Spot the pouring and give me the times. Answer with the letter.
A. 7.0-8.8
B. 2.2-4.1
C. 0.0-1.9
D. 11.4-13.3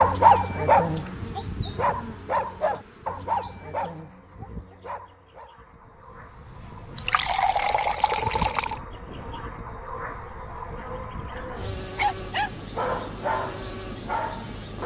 A.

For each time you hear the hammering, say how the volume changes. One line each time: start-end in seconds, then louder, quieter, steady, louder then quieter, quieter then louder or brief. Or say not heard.
not heard.